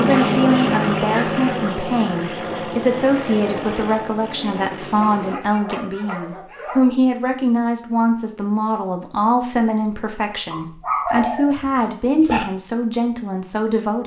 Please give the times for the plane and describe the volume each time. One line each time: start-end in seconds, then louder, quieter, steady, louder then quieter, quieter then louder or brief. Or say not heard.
0.0-5.4 quieter.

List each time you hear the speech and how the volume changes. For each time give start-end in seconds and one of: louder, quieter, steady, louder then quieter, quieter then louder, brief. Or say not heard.
0.0-14.0 steady.